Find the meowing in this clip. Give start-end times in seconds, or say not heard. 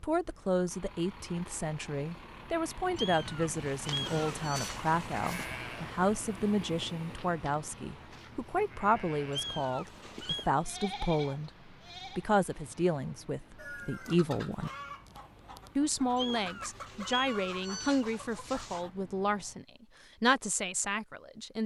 3.0-5.5, 9.3-10.5, 16.1-18.9.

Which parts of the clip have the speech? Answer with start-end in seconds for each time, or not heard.
0.0-14.7, 15.8-21.6.